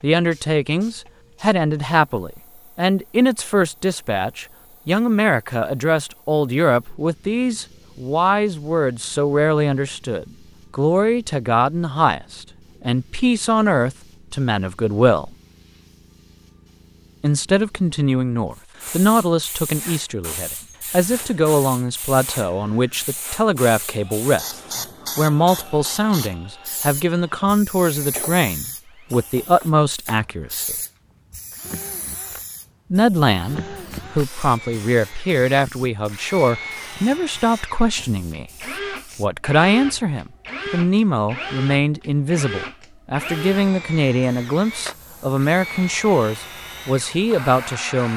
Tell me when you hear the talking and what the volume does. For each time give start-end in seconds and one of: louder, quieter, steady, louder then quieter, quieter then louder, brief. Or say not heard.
0.0-15.3 steady
17.2-30.8 steady
32.9-48.1 steady.